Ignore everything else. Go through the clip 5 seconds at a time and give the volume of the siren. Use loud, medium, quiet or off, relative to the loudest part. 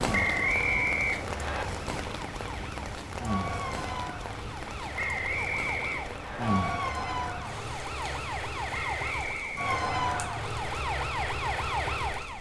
medium, loud, loud.